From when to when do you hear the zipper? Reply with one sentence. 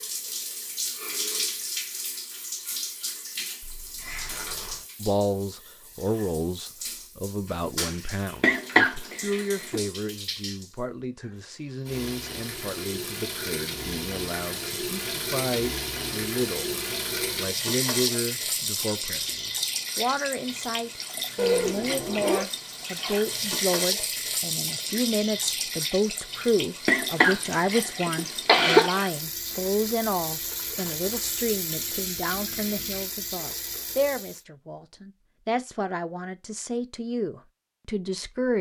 You can hear the zipper from 3.6 to 4.8 s and from 21.4 to 22.4 s.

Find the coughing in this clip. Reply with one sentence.
You can hear the coughing from 8.4 to 9.8 s and from 26.9 to 28.9 s.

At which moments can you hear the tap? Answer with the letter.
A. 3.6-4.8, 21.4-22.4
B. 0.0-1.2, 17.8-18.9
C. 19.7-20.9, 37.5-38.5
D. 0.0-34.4
D.